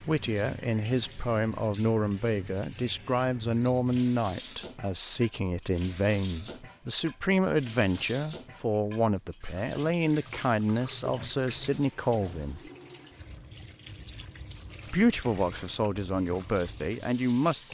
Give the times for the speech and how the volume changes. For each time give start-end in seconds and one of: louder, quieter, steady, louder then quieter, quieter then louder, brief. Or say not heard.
0.1-12.6 steady
14.8-17.6 brief.